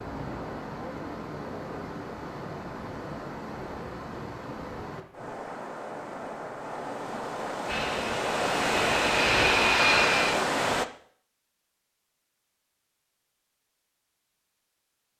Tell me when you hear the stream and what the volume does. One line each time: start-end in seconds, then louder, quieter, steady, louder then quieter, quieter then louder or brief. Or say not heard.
0.0-10.8 louder.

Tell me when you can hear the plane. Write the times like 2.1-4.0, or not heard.
7.7-10.3.